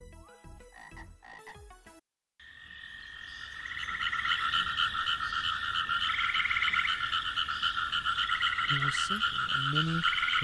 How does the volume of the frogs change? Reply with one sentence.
The volume of the frogs goes up.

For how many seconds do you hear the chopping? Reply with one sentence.
The chopping can't be heard in this clip.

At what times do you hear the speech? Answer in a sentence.
You can hear the speech from 8.7 to 10.3 s.